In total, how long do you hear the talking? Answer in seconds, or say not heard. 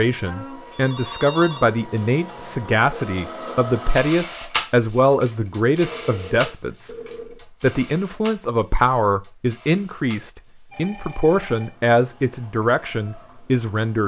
13 s.